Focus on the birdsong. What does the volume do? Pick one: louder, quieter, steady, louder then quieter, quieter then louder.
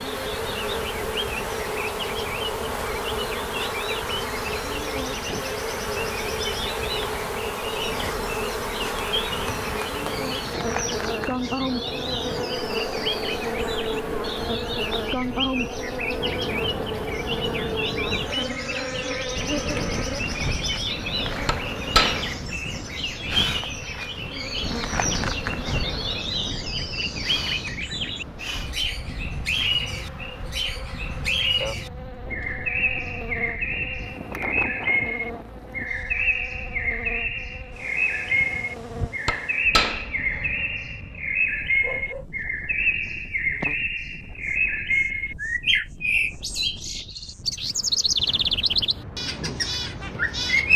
louder.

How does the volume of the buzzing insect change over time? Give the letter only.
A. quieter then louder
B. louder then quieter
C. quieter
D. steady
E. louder
C.